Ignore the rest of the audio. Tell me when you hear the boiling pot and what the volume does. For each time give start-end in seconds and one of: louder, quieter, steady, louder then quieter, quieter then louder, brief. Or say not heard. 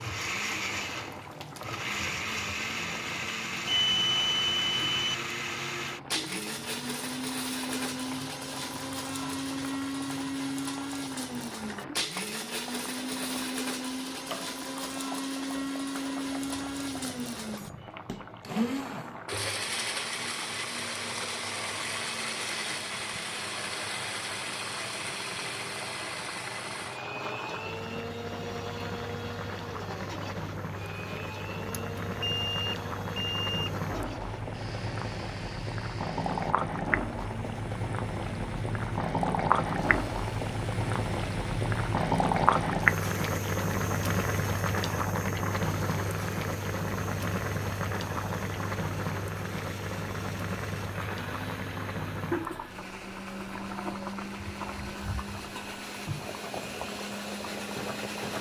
0.0-58.3 louder then quieter.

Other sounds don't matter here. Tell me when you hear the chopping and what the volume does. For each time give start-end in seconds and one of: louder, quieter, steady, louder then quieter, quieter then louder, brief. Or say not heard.
not heard.